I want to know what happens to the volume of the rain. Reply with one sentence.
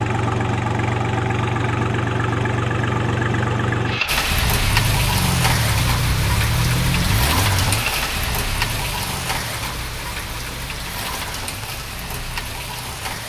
The volume of the rain goes down.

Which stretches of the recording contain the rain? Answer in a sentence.
You can hear the rain from 4.0 to 13.2 s.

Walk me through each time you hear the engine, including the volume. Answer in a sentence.
You can hear the engine from 0.0 to 13.2 s, getting quieter.